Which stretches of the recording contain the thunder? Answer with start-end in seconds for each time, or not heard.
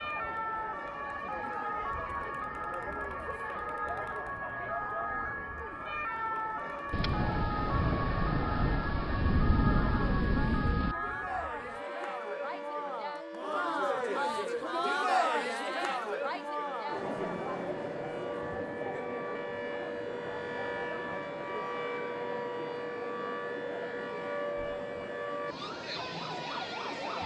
6.9-10.9.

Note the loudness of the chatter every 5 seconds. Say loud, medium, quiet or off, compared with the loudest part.
medium, medium, loud, loud, medium, medium.